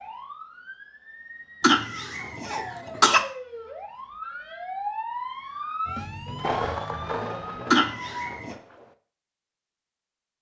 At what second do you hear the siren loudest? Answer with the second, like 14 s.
5 s.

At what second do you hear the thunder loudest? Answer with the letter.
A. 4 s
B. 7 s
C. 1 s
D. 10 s
B.